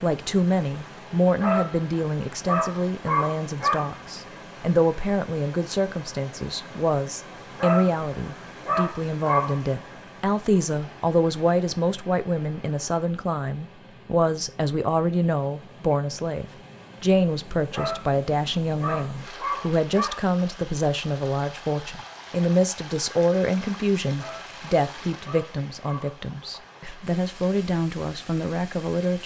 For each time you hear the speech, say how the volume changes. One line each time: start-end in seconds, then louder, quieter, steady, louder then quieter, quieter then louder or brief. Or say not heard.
0.0-29.2 steady.